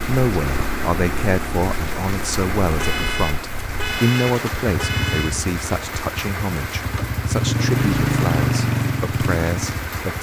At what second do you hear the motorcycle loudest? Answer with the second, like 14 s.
8 s.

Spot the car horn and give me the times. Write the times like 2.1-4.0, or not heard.
2.8-5.3.